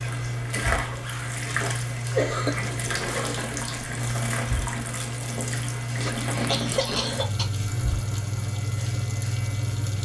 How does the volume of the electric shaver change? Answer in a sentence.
The volume of the electric shaver stays about the same.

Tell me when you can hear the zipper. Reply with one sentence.
The zipper can be heard from 2.5 to 3.2 s and from 6.0 to 6.8 s.